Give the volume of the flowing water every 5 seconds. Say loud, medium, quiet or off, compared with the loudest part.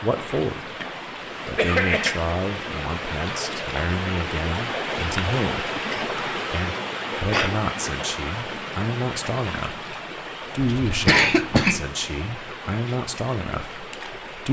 loud, loud, medium.